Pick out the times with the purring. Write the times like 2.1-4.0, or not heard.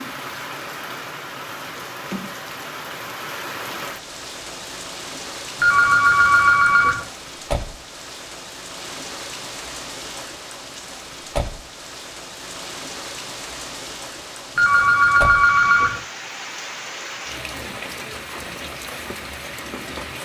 not heard.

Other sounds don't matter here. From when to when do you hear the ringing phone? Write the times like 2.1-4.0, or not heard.
5.6-7.0, 14.6-16.0.